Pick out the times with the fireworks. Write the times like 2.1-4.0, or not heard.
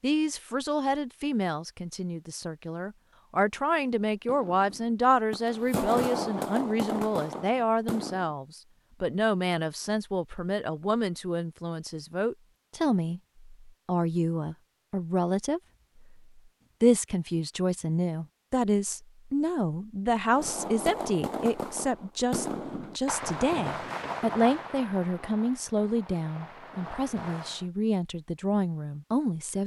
3.5-8.3, 20.3-27.6.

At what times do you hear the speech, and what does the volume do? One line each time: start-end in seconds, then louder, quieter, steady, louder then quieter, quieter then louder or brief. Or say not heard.
0.0-29.6 steady.